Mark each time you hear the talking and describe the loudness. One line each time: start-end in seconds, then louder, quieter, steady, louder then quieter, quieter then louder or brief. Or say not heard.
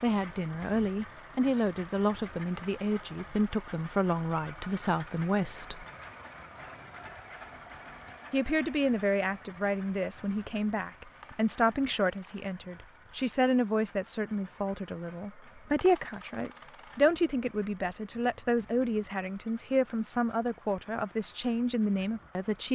0.0-5.8 steady
8.3-22.7 steady.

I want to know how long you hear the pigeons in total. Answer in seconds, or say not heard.
not heard.